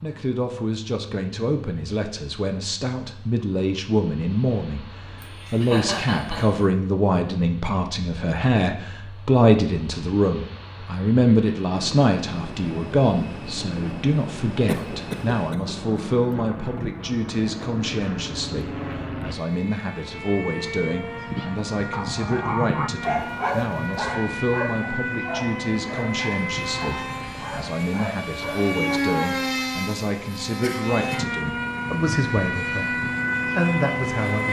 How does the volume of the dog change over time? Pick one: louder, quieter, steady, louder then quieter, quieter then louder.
quieter.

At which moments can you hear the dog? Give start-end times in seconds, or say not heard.
21.4-28.9.